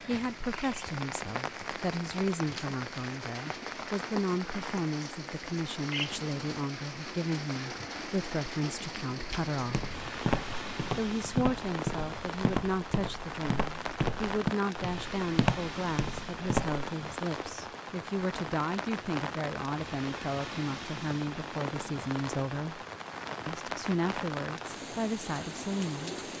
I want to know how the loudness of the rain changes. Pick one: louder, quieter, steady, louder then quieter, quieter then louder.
steady.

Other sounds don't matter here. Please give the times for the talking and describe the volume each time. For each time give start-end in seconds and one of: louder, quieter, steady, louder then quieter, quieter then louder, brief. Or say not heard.
0.0-9.9 steady
10.9-22.8 steady
23.4-26.1 brief.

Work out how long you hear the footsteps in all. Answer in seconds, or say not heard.
7 s.